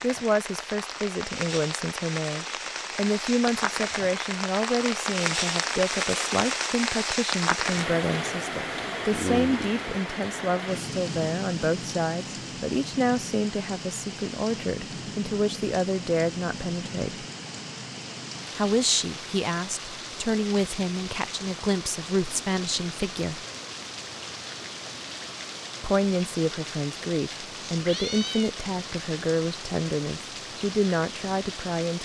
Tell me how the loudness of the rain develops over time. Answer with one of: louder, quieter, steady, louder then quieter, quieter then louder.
quieter.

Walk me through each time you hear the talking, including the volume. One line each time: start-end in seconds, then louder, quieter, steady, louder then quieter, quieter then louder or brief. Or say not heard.
0.0-17.2 steady
18.6-23.4 steady
25.8-32.0 steady.